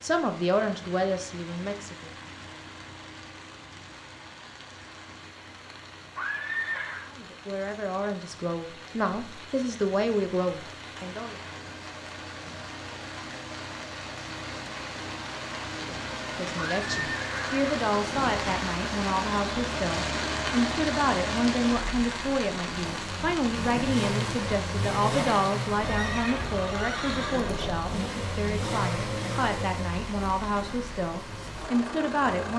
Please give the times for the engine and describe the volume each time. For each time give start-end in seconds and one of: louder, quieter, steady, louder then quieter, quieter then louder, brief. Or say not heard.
0.0-32.5 louder.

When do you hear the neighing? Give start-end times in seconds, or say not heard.
6.2-7.0, 16.6-17.8, 25.8-27.9.